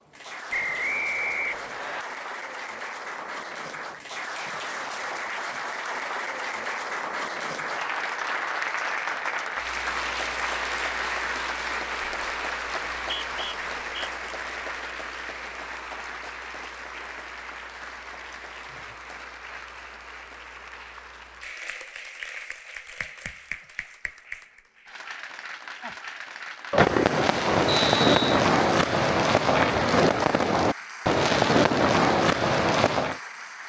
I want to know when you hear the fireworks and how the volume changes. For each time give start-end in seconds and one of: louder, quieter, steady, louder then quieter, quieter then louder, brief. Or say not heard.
26.7-33.2 steady.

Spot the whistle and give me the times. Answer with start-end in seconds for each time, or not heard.
0.5-2.0, 12.9-14.1, 27.6-28.4.